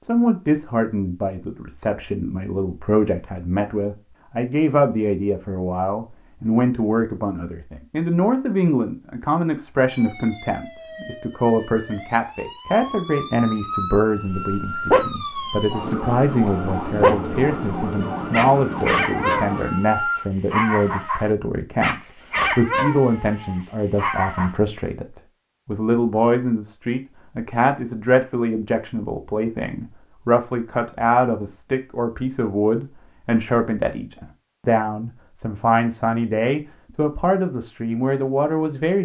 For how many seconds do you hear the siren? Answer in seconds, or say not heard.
10 s.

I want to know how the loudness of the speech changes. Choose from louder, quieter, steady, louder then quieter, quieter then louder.
steady.